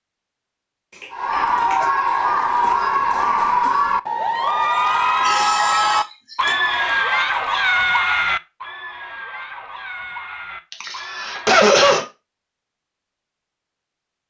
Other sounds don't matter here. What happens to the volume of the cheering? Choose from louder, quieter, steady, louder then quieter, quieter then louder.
quieter.